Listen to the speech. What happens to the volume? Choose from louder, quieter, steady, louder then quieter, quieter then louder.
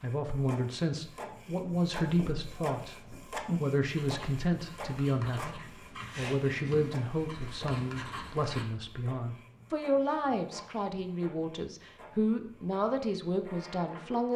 steady.